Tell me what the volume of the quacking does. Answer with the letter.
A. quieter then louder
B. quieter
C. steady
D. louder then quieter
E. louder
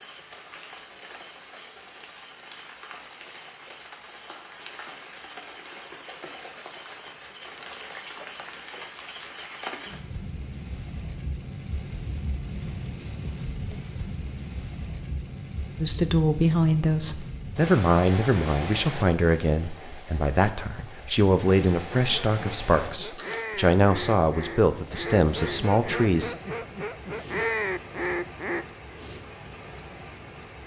E.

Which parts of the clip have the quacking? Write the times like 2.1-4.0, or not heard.
21.9-28.6.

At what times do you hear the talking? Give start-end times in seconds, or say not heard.
15.8-26.4.